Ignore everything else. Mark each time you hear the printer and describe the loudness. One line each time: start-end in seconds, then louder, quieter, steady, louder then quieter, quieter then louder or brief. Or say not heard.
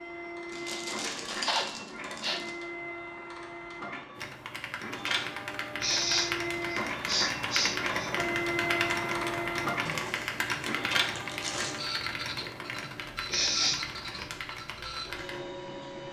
0.0-16.0 louder then quieter.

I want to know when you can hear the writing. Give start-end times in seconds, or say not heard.
not heard.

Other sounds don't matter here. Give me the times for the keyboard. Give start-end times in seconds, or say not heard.
4.2-15.4.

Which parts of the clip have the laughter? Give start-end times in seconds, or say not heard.
not heard.